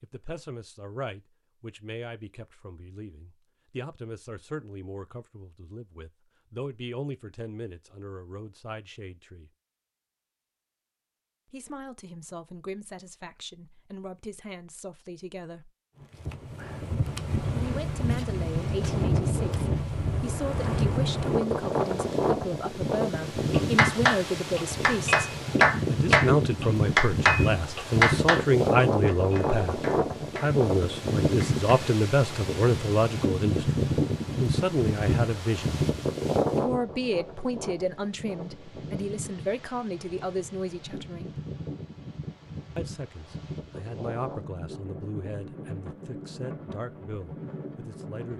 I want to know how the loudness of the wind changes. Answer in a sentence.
The loudness of the wind goes down.